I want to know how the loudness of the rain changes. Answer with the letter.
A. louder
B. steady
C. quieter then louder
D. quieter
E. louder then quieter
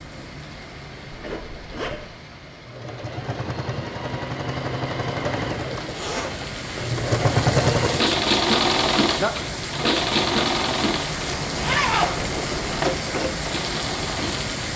A.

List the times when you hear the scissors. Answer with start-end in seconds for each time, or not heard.
not heard.